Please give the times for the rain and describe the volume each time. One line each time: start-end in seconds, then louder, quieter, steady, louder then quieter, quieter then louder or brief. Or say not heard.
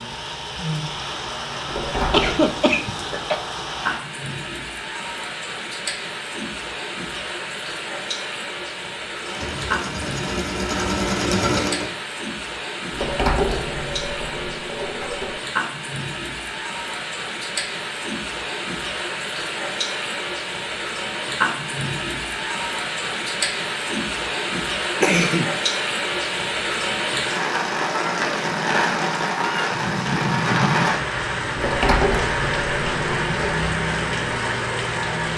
0.0-35.3 louder.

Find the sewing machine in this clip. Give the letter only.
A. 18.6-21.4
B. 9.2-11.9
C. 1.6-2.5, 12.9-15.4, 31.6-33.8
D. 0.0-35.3
B.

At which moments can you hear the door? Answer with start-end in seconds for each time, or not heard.
1.6-2.5, 12.9-15.4, 31.6-33.8.